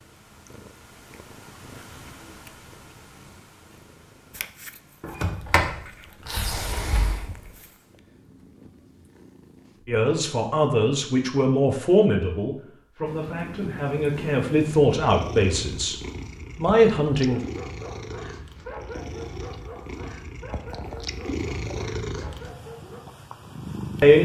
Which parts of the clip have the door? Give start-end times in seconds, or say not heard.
5.0-7.5.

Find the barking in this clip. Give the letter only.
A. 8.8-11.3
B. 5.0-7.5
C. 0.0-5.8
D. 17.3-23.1
D.